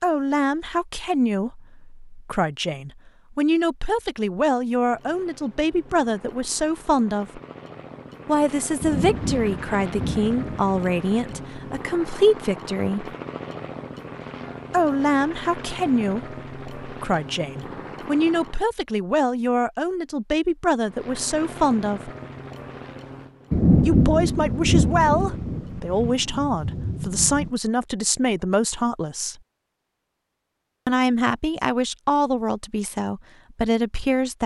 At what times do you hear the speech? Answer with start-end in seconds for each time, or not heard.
0.0-7.4, 8.2-13.2, 14.7-22.1, 23.9-29.4, 30.9-34.4.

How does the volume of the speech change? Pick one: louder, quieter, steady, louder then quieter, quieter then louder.
steady.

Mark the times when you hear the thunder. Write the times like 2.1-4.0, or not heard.
8.8-11.6, 23.5-27.5.